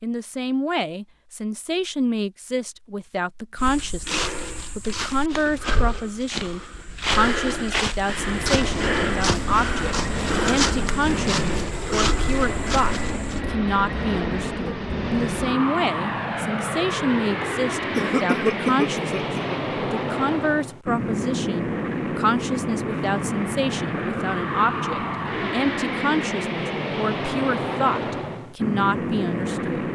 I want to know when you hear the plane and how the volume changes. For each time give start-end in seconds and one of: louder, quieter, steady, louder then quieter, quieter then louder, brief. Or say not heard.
8.1-29.9 steady.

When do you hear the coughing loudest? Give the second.
18 s.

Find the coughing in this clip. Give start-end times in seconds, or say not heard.
17.2-19.6.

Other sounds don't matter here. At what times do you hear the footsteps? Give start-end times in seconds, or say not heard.
3.5-13.4.